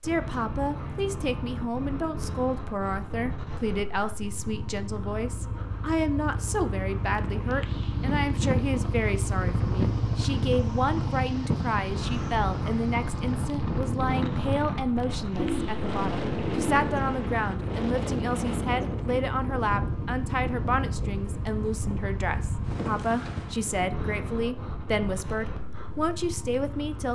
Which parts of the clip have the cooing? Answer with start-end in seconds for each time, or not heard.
15.3-17.6.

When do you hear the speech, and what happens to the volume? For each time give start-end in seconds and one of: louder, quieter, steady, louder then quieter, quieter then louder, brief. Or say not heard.
0.0-27.1 steady.